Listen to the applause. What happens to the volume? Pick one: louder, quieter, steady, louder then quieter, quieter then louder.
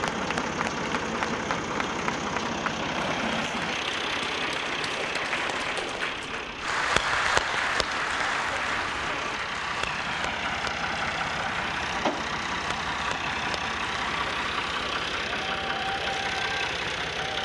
louder then quieter.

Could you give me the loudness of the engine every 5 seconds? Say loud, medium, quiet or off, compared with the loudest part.
loud, medium, loud, loud.